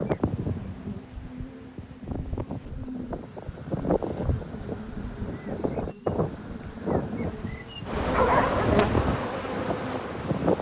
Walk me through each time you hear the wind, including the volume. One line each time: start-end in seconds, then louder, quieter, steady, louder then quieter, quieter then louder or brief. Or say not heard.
0.0-10.5 louder.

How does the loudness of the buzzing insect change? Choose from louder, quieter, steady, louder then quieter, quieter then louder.
louder.